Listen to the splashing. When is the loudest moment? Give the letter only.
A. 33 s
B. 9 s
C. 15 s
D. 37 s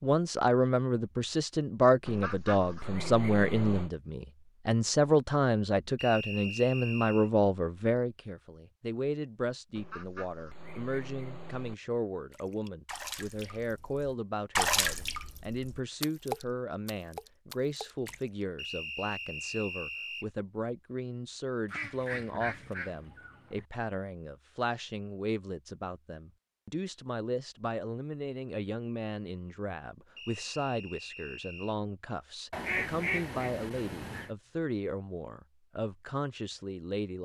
C.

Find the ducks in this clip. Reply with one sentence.
The ducks can be heard from 2.0 to 3.9 s, from 9.8 to 11.8 s, from 21.6 to 23.6 s and from 32.5 to 34.3 s.